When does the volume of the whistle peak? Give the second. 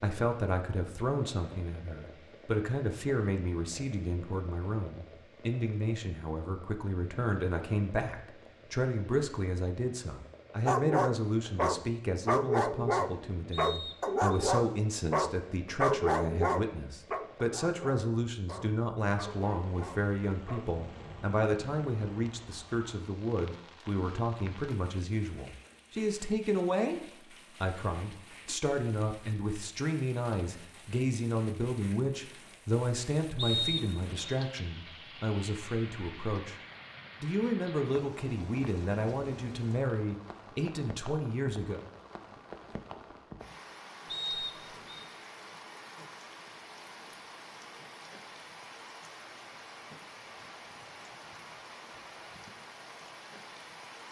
34 s.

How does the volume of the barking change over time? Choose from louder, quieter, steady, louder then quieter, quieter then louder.
quieter.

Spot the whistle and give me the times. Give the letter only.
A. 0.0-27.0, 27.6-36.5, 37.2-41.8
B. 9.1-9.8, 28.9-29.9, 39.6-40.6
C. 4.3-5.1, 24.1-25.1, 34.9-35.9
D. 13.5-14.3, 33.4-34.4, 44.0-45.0
D.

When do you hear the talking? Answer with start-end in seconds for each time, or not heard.
0.0-27.0, 27.6-36.5, 37.2-41.8.